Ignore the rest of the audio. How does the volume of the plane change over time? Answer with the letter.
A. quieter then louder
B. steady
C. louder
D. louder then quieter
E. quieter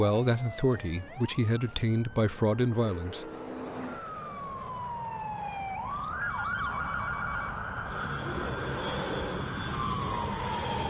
C.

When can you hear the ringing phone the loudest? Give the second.
7 s.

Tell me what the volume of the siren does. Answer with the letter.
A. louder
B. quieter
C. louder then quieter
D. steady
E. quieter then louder
A.